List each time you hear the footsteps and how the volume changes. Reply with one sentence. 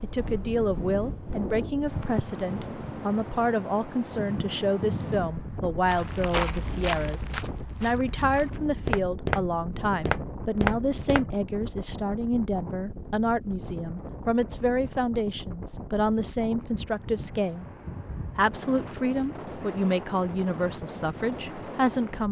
The footsteps can be heard from 5.8 to 11.3 s, getting quieter then louder.